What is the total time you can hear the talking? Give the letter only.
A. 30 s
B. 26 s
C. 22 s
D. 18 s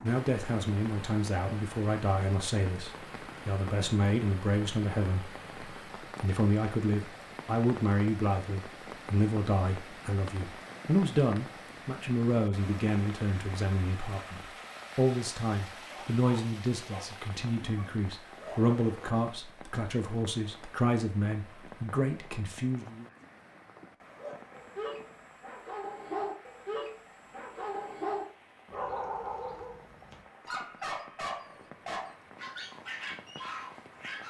C.